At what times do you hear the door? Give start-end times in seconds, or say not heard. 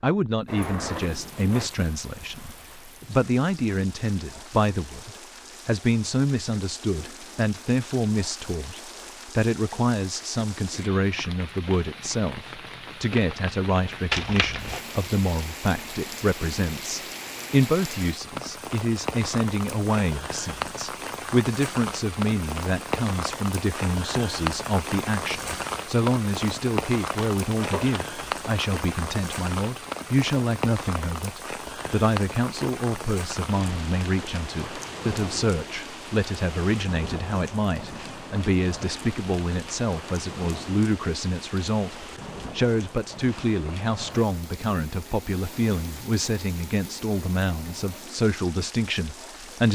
0.5-1.7.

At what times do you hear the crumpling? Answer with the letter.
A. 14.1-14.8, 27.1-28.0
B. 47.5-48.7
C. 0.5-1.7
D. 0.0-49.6
A.